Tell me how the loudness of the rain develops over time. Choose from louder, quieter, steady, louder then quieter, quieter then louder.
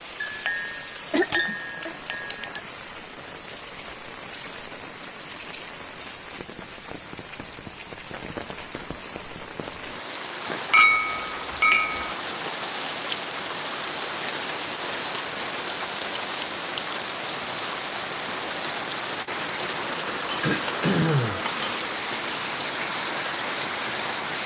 louder.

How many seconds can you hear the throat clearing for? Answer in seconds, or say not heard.
2 s.